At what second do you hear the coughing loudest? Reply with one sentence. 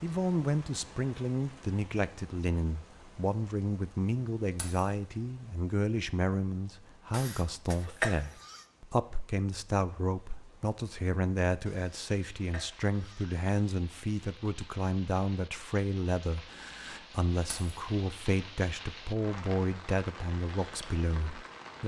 The volume of the coughing peaks at 8 seconds.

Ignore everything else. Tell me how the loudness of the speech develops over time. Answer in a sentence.
The loudness of the speech stays about the same.